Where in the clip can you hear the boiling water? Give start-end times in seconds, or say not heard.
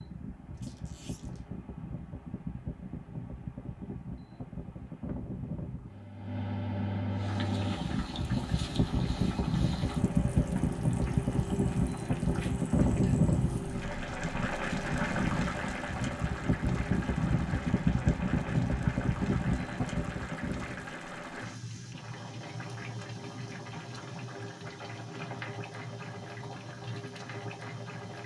7.1-28.2.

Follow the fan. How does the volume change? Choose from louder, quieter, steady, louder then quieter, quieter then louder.
louder.